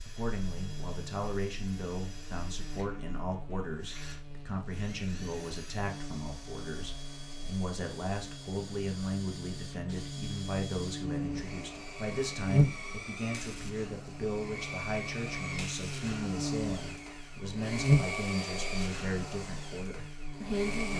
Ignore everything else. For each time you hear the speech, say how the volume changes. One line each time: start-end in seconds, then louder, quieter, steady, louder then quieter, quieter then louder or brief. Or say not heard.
0.0-20.9 steady.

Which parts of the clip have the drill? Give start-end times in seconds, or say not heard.
0.0-20.9.